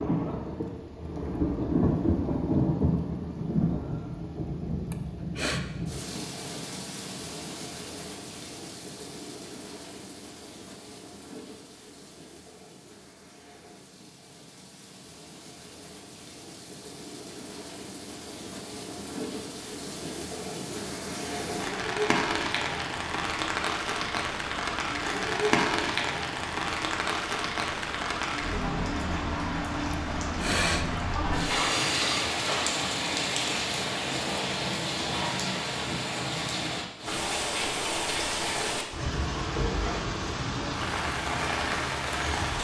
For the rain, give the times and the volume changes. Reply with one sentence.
You can hear the rain from 0.0 to 42.5 s, getting quieter then louder.